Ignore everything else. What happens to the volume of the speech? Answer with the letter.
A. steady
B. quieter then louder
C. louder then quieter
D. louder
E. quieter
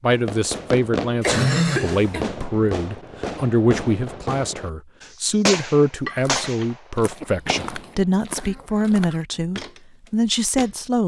A.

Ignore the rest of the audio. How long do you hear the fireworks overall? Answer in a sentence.
You can hear the fireworks for 8 seconds altogether.